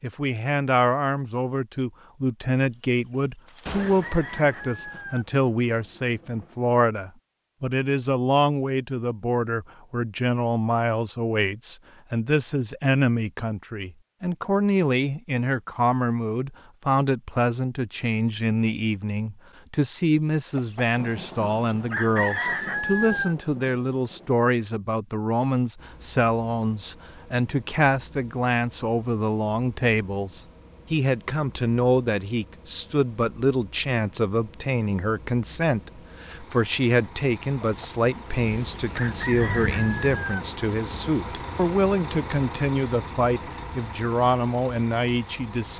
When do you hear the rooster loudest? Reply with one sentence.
The loudest moment of the rooster is at 22 seconds.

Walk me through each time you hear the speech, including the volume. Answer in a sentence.
You can hear the speech from 0.0 to 45.7 s, at a steady volume.